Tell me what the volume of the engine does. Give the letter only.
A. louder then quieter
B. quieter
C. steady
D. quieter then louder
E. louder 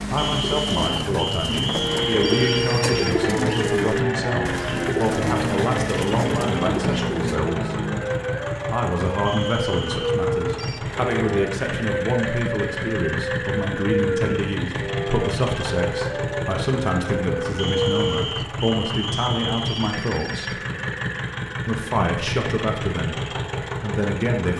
C.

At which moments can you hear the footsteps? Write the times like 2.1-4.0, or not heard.
not heard.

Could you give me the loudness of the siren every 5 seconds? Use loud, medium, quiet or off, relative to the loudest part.
loud, loud, loud, loud, off.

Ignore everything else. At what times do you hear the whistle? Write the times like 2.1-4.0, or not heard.
0.1-2.6, 9.2-10.0, 17.6-19.9.